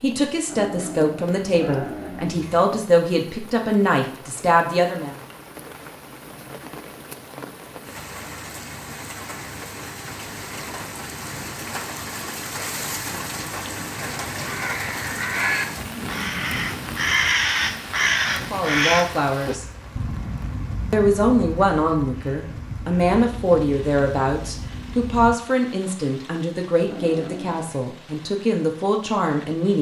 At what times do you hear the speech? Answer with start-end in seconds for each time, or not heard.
0.0-5.2, 18.4-19.6, 20.9-29.7.